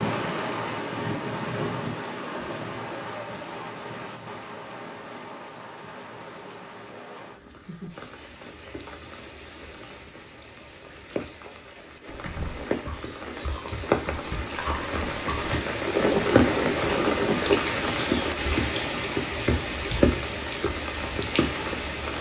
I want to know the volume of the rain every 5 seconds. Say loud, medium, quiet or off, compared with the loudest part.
medium, quiet, medium, loud, loud.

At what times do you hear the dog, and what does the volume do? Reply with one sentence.
You can't hear the dog here.